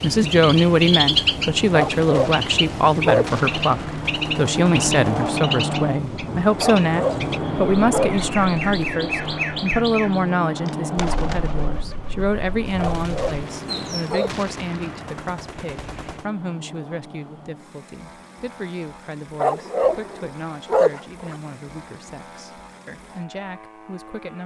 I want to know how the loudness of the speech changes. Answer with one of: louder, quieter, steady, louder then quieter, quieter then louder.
quieter.